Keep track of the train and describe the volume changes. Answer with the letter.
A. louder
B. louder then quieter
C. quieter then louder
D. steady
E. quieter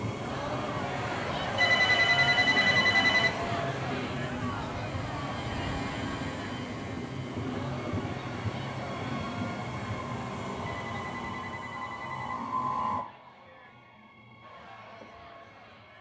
D.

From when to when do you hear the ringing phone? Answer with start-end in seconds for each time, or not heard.
1.6-3.4, 10.8-12.3.